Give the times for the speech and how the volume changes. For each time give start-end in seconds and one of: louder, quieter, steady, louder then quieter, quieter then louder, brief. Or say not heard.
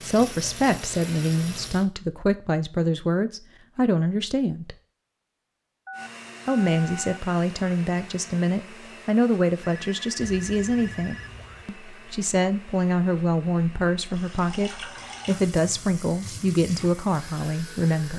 0.0-4.8 steady
6.5-18.1 steady.